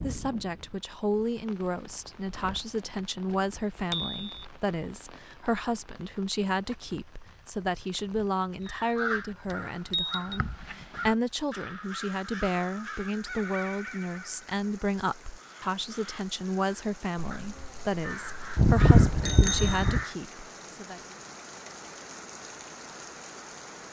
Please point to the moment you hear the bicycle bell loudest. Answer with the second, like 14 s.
19 s.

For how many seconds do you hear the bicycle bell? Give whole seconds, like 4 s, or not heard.
3 s.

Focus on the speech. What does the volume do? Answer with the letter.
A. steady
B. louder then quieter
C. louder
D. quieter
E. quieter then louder
A.